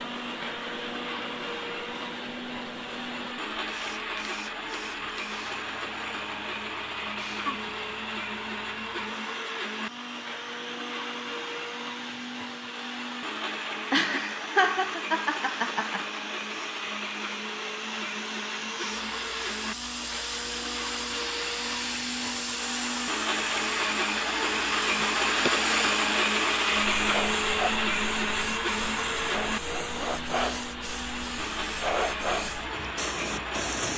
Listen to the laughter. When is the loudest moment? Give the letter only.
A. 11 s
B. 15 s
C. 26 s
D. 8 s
B.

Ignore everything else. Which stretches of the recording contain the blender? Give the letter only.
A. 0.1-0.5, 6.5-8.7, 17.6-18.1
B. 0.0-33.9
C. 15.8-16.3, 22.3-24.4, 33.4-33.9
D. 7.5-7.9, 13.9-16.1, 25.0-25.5
B.